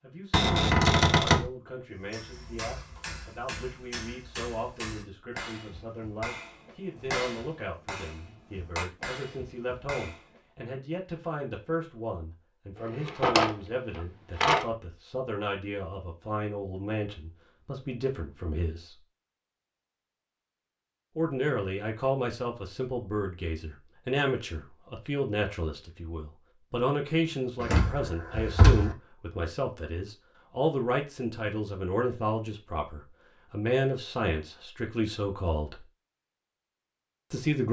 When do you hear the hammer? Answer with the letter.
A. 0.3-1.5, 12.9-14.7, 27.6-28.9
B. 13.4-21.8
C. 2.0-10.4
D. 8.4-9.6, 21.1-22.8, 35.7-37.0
C.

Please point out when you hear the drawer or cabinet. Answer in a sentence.
The drawer or cabinet can be heard from 0.3 to 1.5 s, from 12.9 to 14.7 s and from 27.6 to 28.9 s.